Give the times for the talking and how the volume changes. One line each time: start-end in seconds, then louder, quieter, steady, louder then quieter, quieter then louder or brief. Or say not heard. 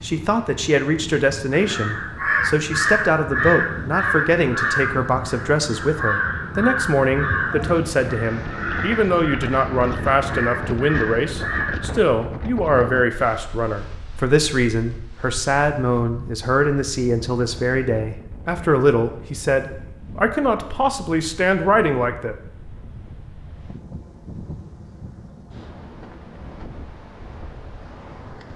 0.0-22.4 steady.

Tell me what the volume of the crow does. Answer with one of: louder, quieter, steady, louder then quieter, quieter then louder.
quieter.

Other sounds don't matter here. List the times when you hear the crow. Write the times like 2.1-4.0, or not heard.
1.5-11.9.